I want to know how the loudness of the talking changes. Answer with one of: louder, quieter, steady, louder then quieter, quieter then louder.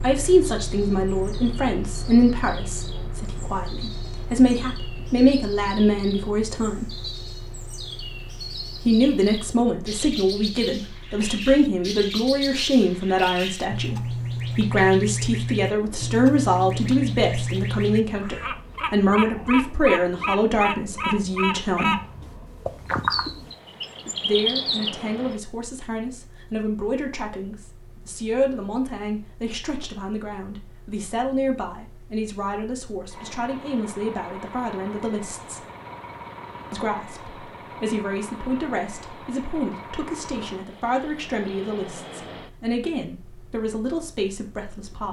quieter.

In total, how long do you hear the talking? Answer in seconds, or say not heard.
40 s.